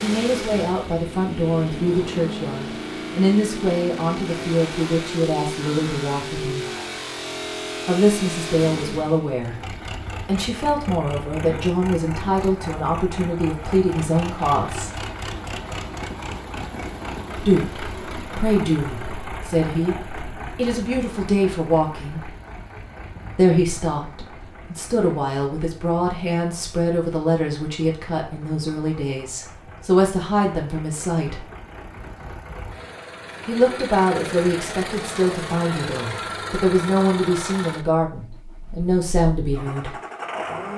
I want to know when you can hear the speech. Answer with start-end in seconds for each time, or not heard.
0.0-6.7, 7.8-9.6, 10.2-14.9, 17.4-22.2, 23.4-31.4, 33.5-40.0.